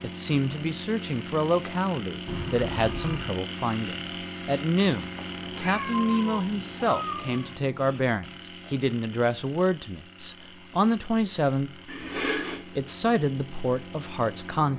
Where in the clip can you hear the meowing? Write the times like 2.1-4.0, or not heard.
2.2-3.4, 5.2-7.5, 11.8-12.6.